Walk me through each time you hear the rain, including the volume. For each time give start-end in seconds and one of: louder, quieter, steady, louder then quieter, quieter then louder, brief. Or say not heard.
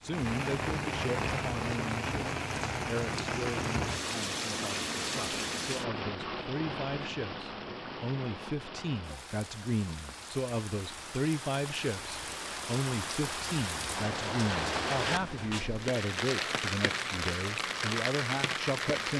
0.0-19.1 quieter then louder.